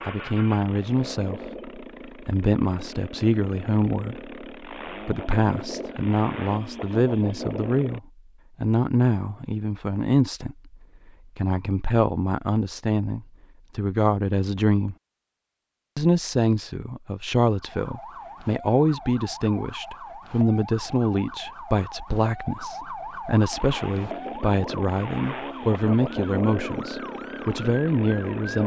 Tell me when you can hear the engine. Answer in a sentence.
You can hear the engine from 0.0 to 8.0 s and from 23.5 to 28.6 s.